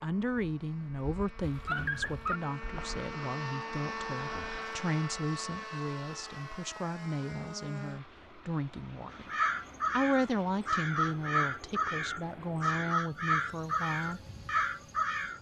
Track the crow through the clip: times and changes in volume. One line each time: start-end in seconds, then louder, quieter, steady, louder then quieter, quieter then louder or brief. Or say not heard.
9.1-15.3 steady.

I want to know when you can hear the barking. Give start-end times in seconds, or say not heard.
1.4-2.4.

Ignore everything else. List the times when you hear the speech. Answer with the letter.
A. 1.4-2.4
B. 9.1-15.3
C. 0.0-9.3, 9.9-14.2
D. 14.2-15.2
C.